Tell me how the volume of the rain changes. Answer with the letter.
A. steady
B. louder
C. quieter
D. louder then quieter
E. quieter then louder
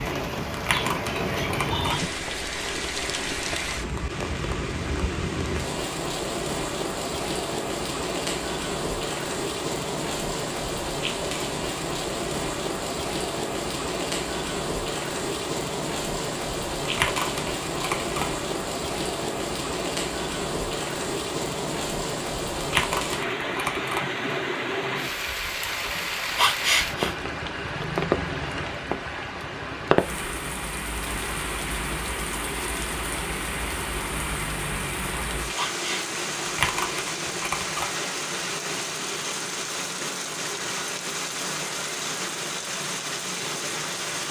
A.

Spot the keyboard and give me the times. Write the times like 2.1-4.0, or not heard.
0.5-1.9, 16.8-18.2, 22.6-24.0, 36.4-37.9.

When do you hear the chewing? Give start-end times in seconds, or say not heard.
not heard.